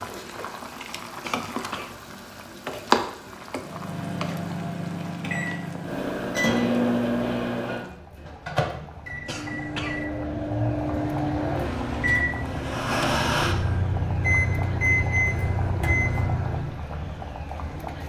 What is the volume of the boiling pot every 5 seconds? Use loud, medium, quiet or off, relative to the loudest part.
loud, quiet, medium, medium.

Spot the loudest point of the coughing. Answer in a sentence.
The volume of the coughing peaks at 10 seconds.